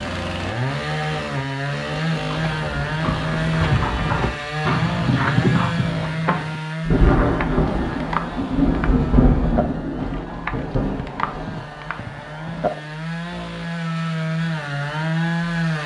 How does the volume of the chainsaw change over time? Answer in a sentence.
The volume of the chainsaw goes down, then up.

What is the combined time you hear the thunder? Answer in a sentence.
You can hear the thunder for 5 seconds altogether.